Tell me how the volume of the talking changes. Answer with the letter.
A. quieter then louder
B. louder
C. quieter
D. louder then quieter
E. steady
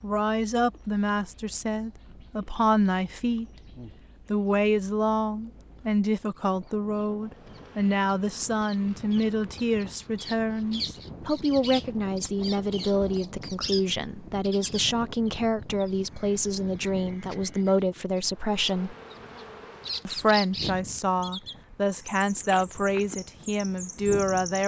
E.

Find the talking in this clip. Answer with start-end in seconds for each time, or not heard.
0.0-3.5, 4.3-18.9, 20.1-24.6.